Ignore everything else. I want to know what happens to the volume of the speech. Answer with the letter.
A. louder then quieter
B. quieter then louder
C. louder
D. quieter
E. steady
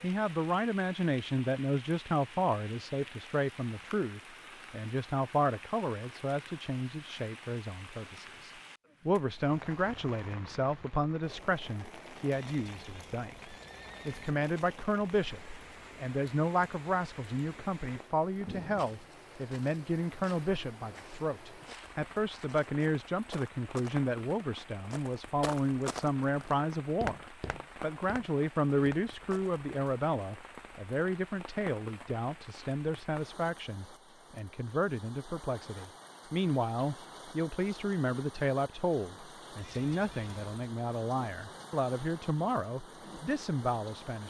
E.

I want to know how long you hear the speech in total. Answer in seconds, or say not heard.
44 s.